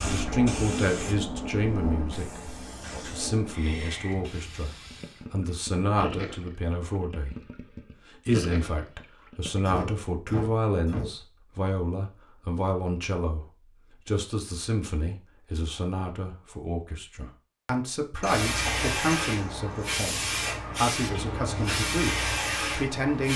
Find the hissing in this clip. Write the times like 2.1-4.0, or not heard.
0.0-5.2, 18.2-23.3.